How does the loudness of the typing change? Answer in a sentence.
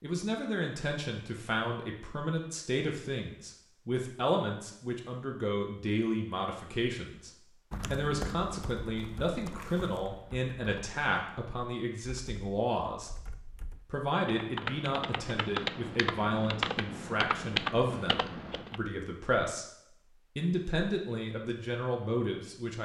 The volume of the typing goes down, then up.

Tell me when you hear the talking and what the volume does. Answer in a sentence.
You can hear the talking from 0.0 to 13.1 s, at a steady volume; and from 13.8 to 22.8 s, at a steady volume.